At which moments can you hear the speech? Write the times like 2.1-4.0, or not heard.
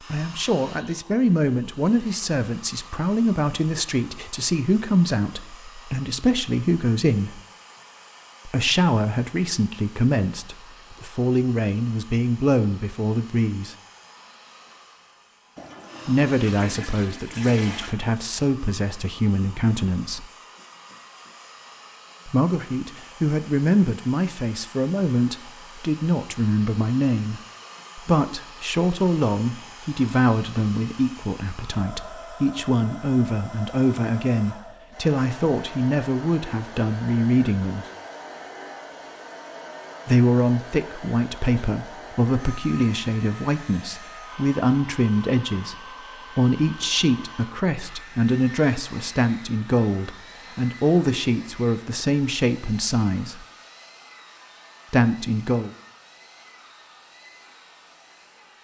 0.1-7.4, 8.4-13.8, 16.1-20.2, 22.2-37.9, 40.0-53.5, 54.9-55.7.